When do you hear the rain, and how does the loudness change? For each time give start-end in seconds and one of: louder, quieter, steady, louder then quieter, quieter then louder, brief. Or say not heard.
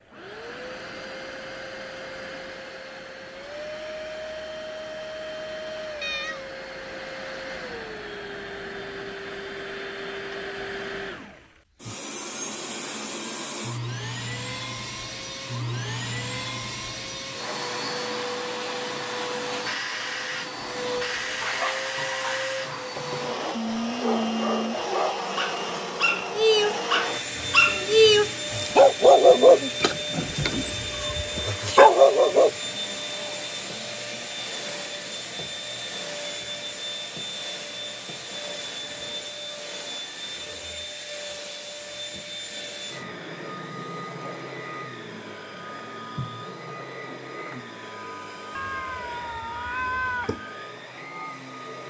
not heard.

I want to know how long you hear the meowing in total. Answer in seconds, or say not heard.
3 s.